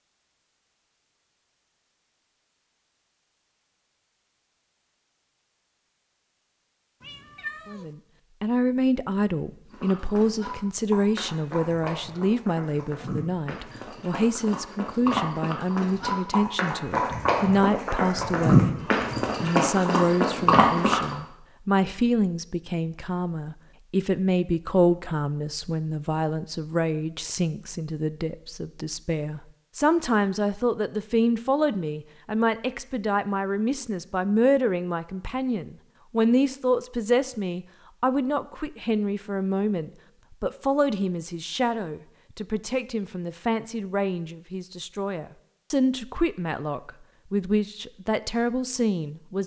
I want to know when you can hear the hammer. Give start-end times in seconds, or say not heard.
not heard.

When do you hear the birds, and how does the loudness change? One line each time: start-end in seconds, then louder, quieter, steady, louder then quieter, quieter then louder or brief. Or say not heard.
not heard.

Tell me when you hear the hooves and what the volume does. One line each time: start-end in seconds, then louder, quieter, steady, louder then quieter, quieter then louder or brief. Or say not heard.
9.7-21.1 louder.